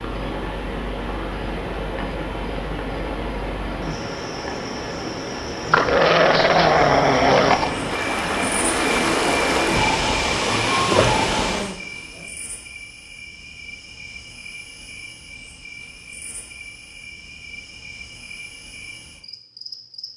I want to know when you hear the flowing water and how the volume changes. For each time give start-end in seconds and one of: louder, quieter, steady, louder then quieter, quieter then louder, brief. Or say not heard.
0.0-11.8 louder.